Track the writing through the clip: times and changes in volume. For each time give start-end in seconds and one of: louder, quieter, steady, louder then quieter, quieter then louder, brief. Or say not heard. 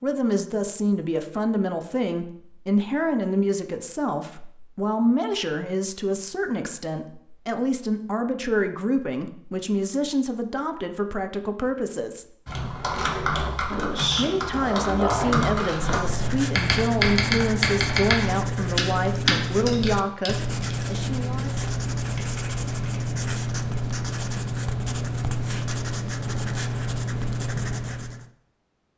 15.9-28.3 steady.